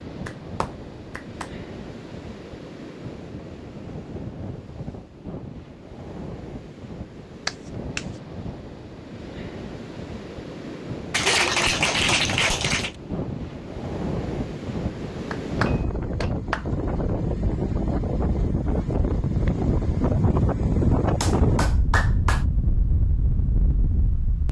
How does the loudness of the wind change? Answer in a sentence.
The volume of the wind goes up.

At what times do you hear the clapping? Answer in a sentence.
The clapping can be heard from 0.2 to 1.5 s, from 7.5 to 8.1 s, from 11.1 to 12.9 s, from 15.3 to 16.6 s and from 21.2 to 22.4 s.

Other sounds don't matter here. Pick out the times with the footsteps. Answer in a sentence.
You can't hear the footsteps here.